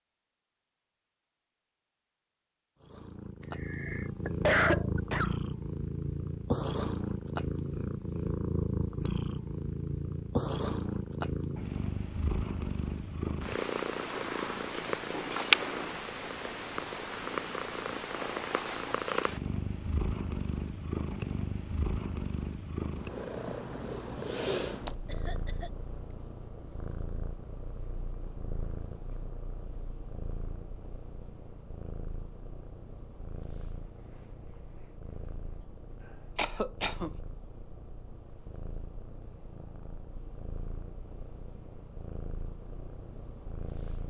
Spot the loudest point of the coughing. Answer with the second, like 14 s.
5 s.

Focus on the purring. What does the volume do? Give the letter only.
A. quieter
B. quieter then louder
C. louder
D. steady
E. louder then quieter
A.